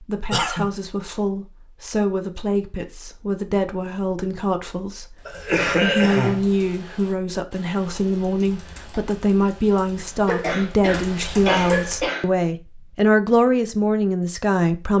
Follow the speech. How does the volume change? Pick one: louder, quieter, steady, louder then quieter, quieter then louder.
louder.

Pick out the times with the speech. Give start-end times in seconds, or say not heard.
0.0-14.9.